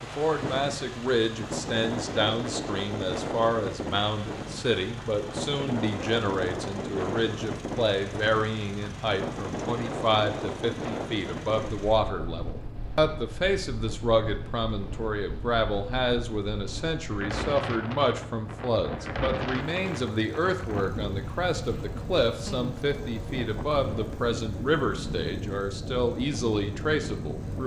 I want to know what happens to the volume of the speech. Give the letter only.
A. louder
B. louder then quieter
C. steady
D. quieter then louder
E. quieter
C.